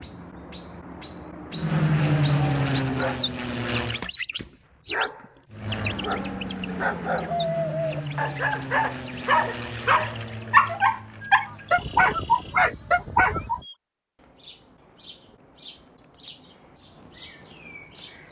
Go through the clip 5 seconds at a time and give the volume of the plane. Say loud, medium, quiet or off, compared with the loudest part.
loud, medium, quiet, off.